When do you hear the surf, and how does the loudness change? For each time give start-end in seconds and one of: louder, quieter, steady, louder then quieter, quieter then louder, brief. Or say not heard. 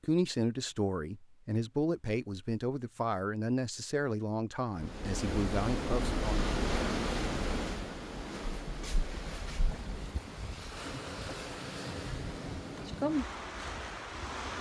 4.8-14.5 quieter then louder.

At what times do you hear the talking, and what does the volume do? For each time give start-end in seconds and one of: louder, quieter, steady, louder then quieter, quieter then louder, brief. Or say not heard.
0.0-6.5 steady.